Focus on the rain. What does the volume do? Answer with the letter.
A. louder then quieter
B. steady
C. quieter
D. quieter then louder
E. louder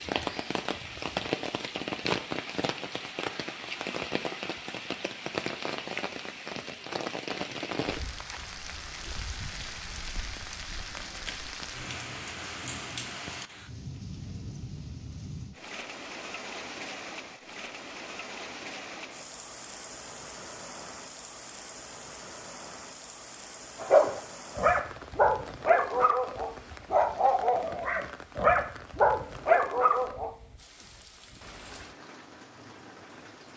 C.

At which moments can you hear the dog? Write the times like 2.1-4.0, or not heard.
23.8-30.3.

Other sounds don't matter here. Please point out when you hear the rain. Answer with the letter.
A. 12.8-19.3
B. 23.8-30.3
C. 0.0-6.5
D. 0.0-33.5
D.